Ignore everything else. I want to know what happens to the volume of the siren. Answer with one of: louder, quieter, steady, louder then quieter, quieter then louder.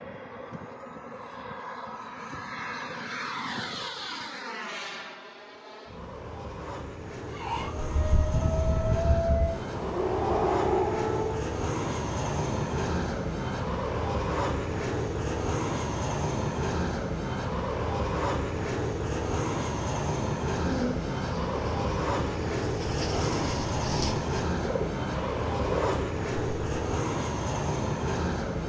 louder.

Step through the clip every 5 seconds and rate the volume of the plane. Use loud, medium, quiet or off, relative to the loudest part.
medium, medium, loud, loud, loud, loud.